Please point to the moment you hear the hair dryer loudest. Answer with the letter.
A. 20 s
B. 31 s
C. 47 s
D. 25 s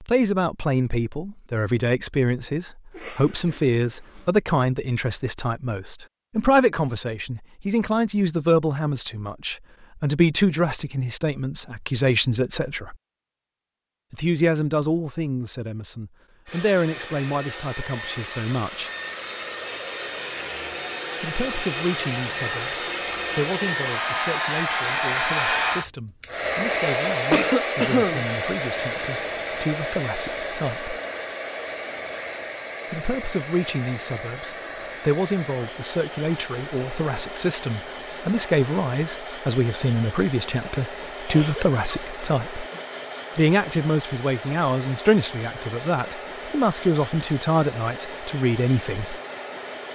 D.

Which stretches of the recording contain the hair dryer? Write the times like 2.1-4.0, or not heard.
16.4-49.8.